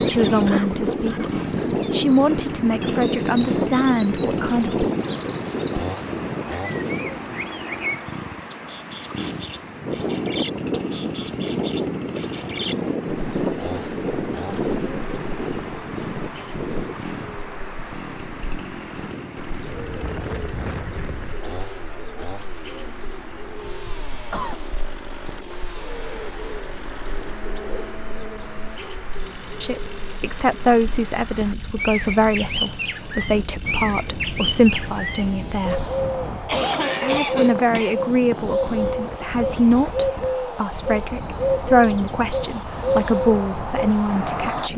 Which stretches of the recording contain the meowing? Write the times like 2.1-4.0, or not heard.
not heard.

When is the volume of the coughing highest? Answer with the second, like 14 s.
37 s.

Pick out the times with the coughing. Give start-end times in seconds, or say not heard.
0.5-1.9, 23.6-24.6, 36.5-38.0.